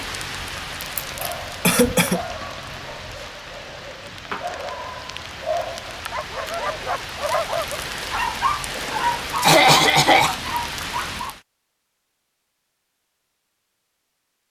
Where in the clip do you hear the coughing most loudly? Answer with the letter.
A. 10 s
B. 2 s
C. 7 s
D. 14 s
A.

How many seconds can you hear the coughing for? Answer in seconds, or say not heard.
2 s.